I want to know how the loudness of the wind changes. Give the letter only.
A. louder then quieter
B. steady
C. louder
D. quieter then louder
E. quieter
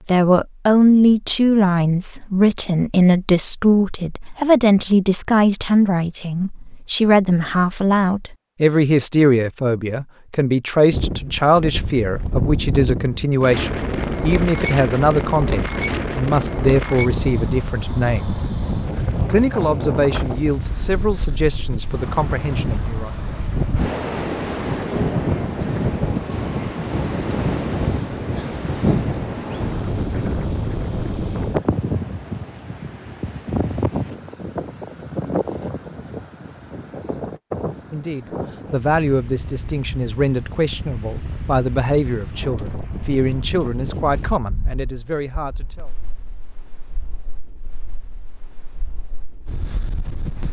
E.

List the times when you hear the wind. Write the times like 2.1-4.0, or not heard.
10.9-50.4.